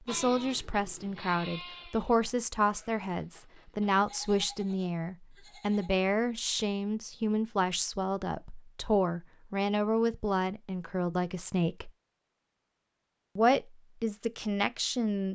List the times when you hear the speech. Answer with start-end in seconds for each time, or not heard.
0.0-11.9, 13.3-15.2.